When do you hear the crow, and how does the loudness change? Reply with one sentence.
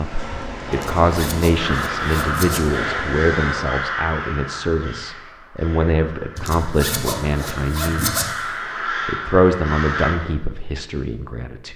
You can hear the crow from 1.6 to 10.2 s, getting quieter then louder.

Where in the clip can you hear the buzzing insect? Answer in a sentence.
The buzzing insect can be heard from 0.0 to 3.6 s.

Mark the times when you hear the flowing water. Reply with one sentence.
The flowing water can't be heard in this clip.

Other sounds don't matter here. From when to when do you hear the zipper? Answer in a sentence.
The zipper can be heard from 0.7 to 2.6 s and from 6.3 to 8.2 s.